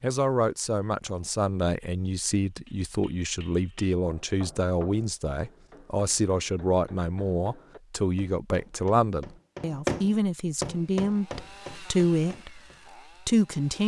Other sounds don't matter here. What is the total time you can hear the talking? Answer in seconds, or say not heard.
13 s.